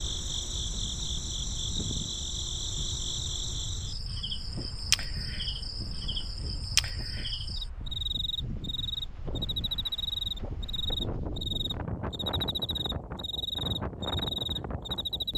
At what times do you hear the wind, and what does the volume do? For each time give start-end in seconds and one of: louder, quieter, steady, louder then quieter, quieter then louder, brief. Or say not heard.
0.0-15.3 louder.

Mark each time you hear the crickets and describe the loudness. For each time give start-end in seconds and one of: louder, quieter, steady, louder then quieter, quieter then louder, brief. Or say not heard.
0.0-15.3 steady.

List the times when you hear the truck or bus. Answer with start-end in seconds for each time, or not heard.
not heard.